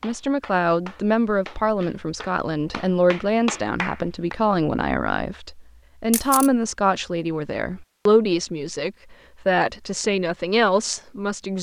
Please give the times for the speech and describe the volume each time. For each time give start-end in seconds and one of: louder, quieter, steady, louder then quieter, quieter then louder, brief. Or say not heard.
0.0-11.5 steady.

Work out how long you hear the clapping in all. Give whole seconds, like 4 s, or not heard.
4 s.